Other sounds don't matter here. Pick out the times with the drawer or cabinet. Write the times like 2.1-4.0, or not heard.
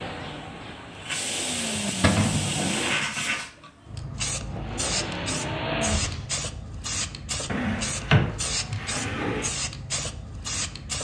2.0-2.5, 7.5-9.5.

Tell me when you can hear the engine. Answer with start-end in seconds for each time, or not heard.
0.0-3.0, 4.5-6.3.